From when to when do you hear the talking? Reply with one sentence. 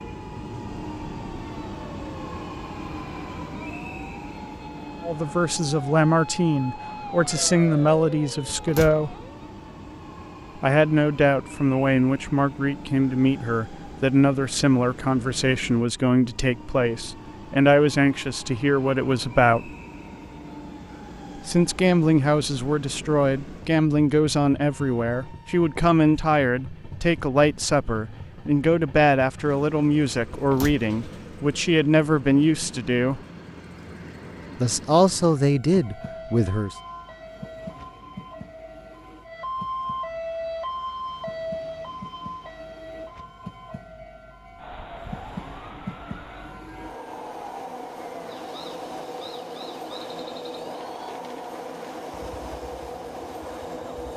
The talking can be heard from 5.0 to 9.2 s, from 10.6 to 19.7 s, from 21.4 to 33.2 s and from 34.5 to 36.8 s.